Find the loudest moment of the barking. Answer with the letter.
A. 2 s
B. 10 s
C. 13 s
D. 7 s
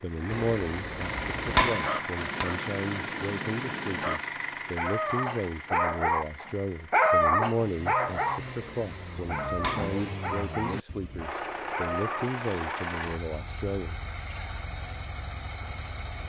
D.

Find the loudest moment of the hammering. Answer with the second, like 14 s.
2 s.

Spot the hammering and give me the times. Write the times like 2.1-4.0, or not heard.
0.3-2.5, 8.3-10.1.